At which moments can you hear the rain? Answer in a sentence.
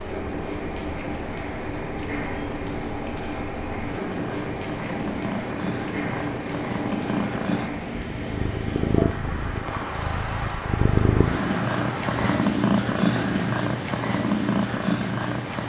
You can hear the rain from 0.0 to 15.6 s.